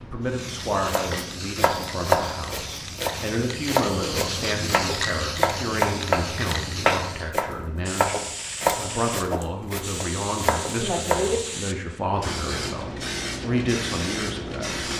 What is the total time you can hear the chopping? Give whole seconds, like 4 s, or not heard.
11 s.